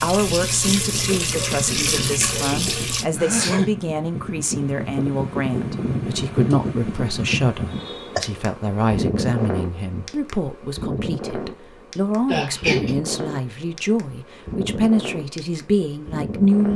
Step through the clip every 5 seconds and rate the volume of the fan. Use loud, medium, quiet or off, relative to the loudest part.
medium, loud, medium, medium.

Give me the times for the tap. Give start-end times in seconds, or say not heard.
0.0-3.0.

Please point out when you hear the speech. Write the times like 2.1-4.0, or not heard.
0.0-16.7.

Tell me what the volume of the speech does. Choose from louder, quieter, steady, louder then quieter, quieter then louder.
steady.